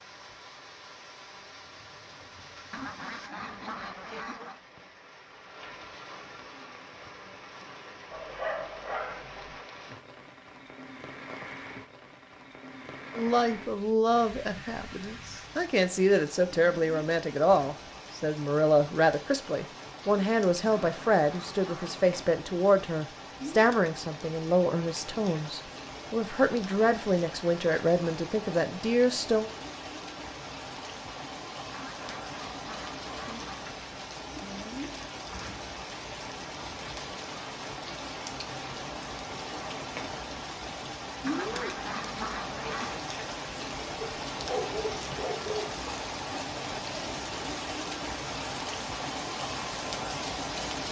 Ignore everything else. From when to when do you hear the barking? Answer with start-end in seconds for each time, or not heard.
8.1-9.7, 44.0-45.8.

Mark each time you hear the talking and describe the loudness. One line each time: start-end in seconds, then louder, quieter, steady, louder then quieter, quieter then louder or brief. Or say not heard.
13.2-29.5 steady.